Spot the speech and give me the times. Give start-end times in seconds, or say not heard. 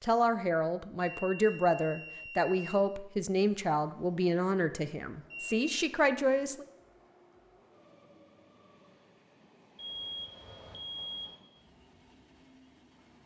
0.0-6.7.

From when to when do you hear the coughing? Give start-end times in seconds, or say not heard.
not heard.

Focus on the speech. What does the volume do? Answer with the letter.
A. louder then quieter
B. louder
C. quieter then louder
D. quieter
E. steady
E.